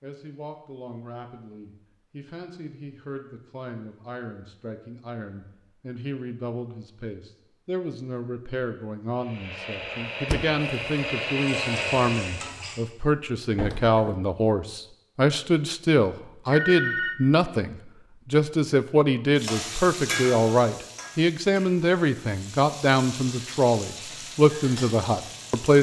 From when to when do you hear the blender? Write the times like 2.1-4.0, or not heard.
9.2-12.6.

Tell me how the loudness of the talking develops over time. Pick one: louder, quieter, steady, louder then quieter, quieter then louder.
louder.